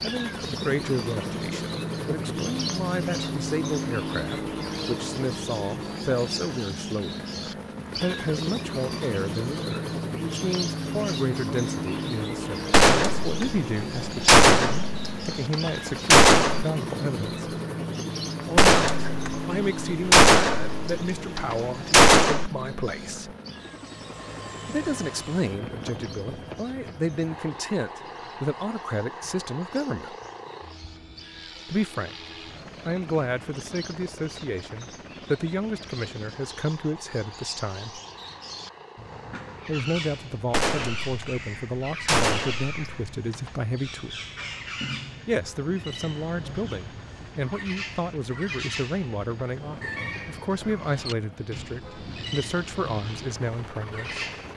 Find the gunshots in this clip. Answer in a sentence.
You can hear the gunshots from 12.7 to 16.6 s, from 18.6 to 22.5 s and from 40.5 to 43.5 s.